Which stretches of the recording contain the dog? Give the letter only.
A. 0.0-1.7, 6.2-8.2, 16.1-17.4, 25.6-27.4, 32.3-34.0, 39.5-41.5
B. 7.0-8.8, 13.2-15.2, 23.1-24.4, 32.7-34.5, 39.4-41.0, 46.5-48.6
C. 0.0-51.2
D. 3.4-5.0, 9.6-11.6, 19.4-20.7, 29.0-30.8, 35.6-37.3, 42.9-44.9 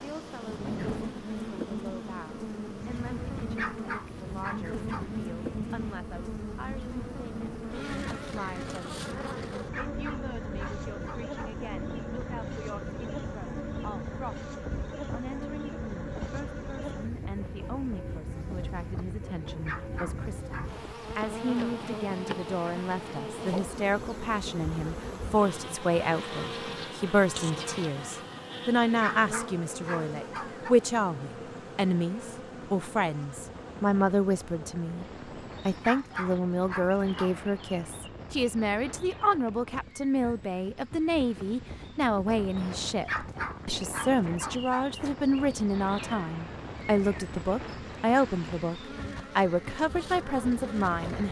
D.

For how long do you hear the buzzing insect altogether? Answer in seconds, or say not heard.
51 s.